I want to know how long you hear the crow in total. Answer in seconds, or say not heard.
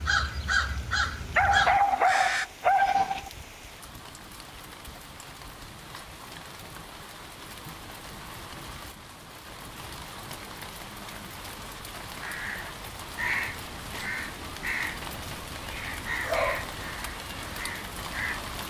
9 s.